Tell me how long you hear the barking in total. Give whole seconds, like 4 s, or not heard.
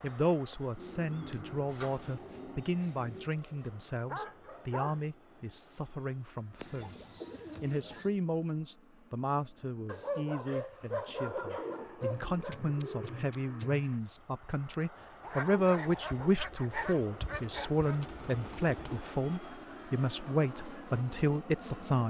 7 s.